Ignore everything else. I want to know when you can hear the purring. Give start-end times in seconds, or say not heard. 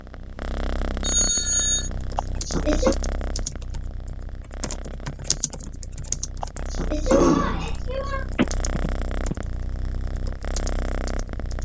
0.0-11.5.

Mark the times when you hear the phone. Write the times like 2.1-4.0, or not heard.
1.0-1.9, 8.3-9.3.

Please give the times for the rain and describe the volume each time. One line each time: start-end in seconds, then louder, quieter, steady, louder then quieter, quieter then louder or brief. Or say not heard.
not heard.